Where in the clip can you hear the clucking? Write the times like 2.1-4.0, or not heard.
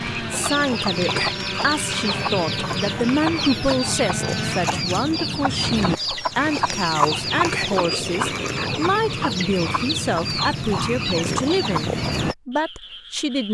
0.3-12.3.